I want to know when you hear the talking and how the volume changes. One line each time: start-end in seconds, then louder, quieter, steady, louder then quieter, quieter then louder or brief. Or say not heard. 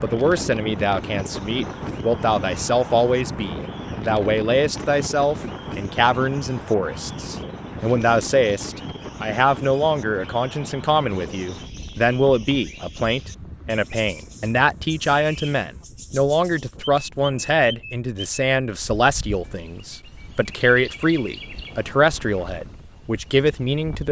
0.0-24.0 steady.